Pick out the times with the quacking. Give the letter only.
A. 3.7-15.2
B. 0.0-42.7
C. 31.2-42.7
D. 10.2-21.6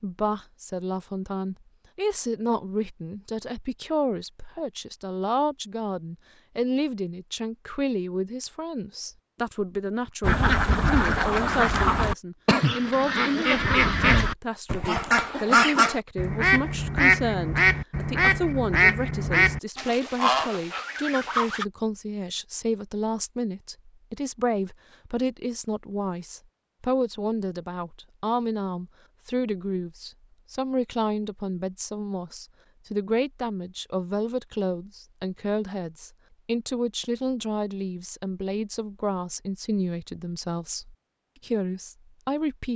D.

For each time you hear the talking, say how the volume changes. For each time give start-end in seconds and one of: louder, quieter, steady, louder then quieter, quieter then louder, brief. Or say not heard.
0.0-42.7 steady.